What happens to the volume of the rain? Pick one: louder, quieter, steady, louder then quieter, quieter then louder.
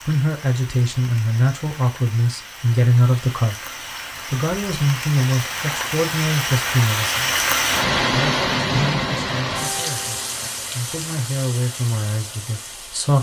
louder then quieter.